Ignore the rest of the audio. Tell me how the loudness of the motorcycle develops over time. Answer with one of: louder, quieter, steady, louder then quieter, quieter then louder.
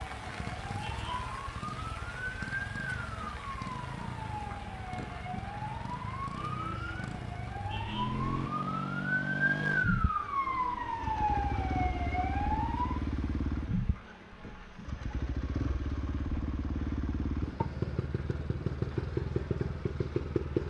louder.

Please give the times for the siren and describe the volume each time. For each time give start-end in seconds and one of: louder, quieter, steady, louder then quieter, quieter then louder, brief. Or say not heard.
0.0-13.0 louder.